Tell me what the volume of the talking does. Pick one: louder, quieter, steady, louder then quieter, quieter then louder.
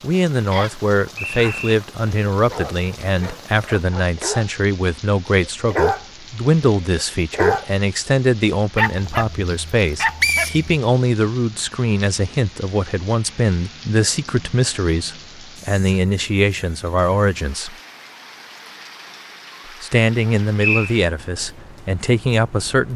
steady.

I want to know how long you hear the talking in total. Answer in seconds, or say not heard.
21 s.